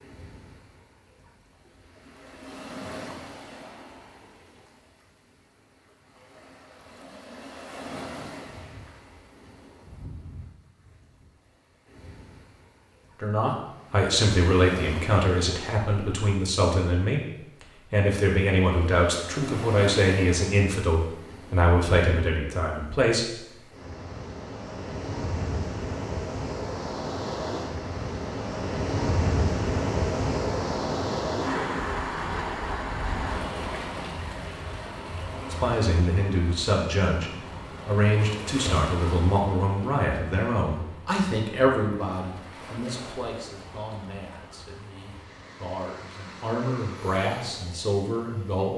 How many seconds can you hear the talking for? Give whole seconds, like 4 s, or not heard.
23 s.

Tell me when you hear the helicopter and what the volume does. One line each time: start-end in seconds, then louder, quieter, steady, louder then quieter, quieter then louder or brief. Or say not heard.
not heard.